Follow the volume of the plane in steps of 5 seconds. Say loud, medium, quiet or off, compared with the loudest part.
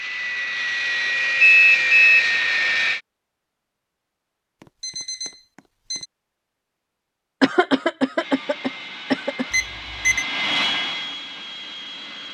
loud, quiet, medium.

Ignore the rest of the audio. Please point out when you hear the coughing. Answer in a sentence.
The coughing can be heard from 7.4 to 9.4 s.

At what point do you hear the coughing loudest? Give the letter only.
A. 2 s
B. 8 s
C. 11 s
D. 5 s
B.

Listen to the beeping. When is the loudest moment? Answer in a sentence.
The volume of the beeping peaks at 2 seconds.